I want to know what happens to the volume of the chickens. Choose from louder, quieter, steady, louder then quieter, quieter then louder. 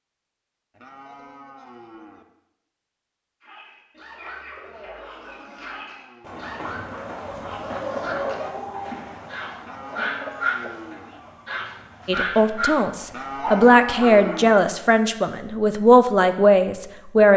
louder then quieter.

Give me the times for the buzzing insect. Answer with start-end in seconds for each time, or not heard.
not heard.